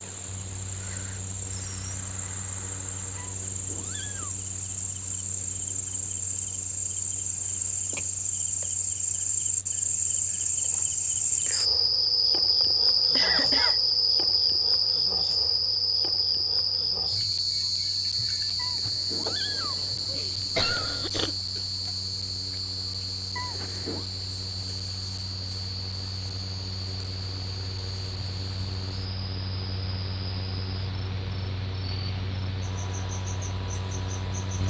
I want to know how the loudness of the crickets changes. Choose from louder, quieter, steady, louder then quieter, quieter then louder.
louder then quieter.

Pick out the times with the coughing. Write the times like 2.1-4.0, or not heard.
12.6-13.8, 20.1-21.4.